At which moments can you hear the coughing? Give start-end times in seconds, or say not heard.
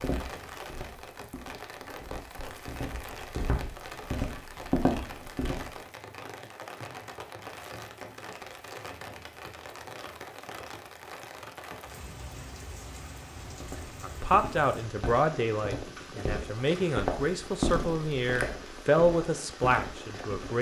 not heard.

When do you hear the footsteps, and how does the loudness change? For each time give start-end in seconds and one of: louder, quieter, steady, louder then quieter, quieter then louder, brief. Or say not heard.
0.0-5.7 louder
13.4-20.5 louder then quieter.